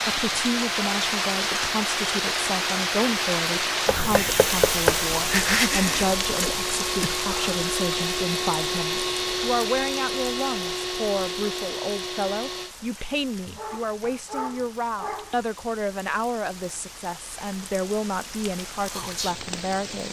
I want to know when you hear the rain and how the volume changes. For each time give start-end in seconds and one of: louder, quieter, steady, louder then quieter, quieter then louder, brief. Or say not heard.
0.0-20.0 quieter then louder.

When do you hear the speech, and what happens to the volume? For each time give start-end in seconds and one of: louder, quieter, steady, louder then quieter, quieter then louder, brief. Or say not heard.
0.1-20.0 steady.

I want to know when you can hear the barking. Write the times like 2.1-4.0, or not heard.
13.6-15.4.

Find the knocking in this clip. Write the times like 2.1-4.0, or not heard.
3.9-5.0.